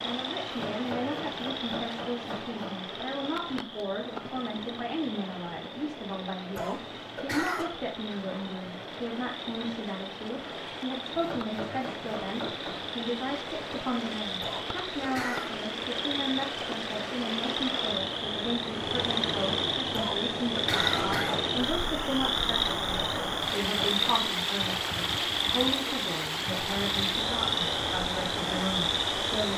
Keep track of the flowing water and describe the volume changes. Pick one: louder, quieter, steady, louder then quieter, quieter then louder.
louder.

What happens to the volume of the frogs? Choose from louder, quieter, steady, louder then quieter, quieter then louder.
louder.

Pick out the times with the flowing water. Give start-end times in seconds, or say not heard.
0.0-29.5.